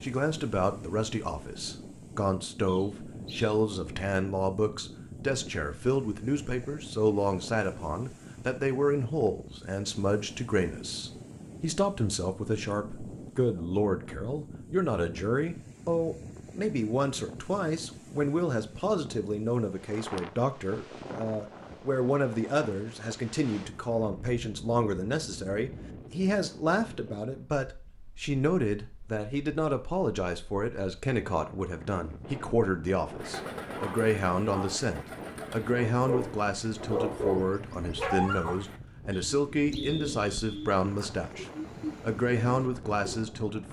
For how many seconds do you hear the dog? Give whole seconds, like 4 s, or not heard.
4 s.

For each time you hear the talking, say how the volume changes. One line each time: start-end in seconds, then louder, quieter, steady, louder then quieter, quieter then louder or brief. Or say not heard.
0.0-43.6 steady.